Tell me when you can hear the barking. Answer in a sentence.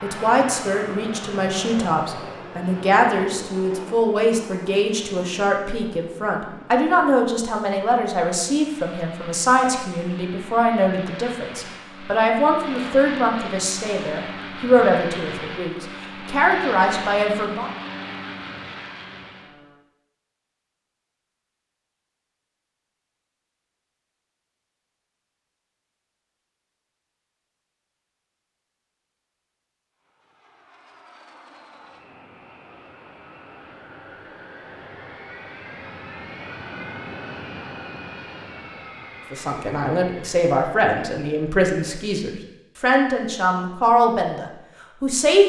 You can't hear the barking here.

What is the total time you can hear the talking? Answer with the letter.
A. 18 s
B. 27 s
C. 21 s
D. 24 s
D.